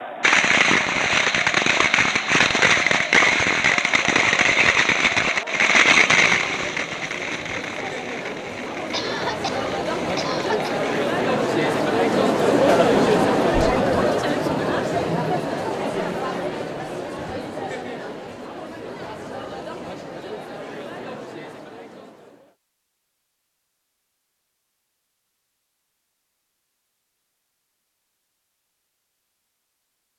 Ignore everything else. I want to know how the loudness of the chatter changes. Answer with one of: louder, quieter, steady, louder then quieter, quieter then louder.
louder then quieter.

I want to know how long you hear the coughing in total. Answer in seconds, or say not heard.
2 s.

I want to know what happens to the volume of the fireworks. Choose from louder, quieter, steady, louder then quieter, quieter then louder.
quieter.